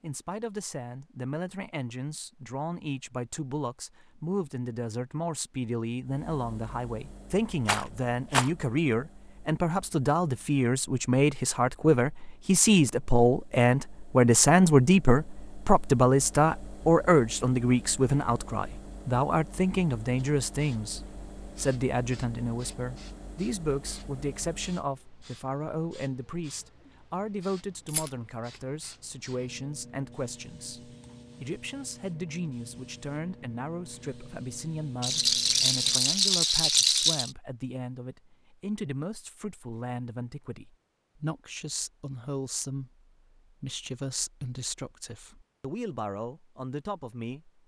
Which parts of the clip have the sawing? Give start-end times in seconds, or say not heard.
not heard.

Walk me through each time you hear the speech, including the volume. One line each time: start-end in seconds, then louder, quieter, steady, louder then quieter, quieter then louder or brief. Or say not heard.
0.0-47.6 louder then quieter.